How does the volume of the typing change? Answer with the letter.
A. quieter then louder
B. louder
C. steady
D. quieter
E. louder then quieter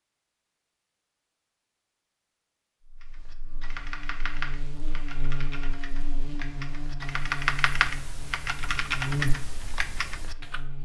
A.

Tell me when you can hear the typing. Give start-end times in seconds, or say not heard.
3.0-10.6.